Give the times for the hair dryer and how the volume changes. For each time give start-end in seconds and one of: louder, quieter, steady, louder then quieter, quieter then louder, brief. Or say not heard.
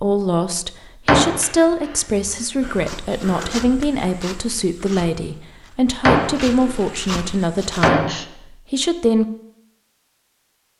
not heard.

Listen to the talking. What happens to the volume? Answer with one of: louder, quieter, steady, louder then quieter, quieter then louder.
steady.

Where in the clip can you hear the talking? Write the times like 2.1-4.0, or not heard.
0.0-9.2.